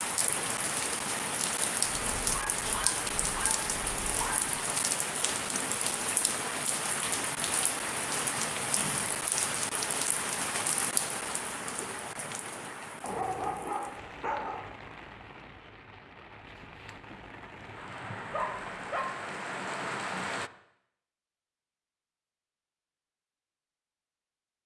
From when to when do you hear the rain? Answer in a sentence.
The rain can be heard from 0.0 to 20.5 s.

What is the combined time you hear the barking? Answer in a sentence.
The barking can be heard for 5 seconds in total.